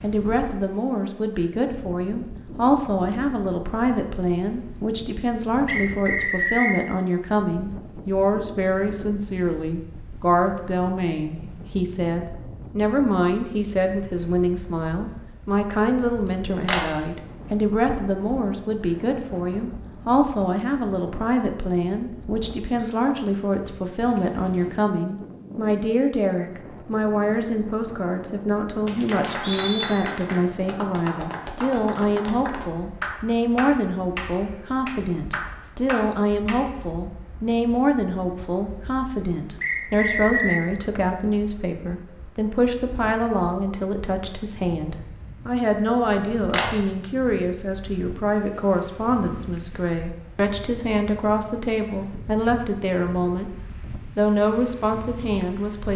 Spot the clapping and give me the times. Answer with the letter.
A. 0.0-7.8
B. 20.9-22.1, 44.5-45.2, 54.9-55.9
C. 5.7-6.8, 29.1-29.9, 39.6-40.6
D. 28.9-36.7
D.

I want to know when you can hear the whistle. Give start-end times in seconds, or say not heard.
5.7-6.8, 29.1-29.9, 39.6-40.6.